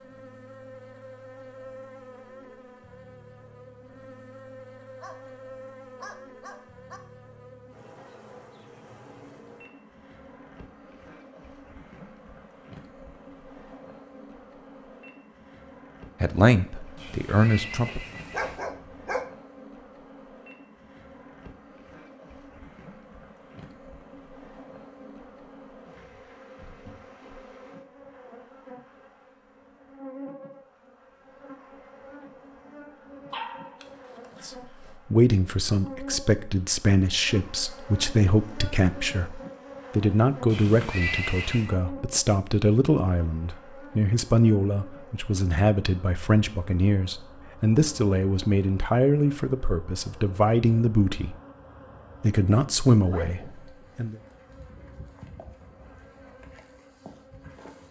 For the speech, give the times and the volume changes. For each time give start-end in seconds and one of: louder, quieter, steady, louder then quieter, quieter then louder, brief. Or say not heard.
16.2-18.0 brief
35.1-51.4 steady
52.2-54.1 brief.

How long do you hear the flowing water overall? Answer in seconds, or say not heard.
not heard.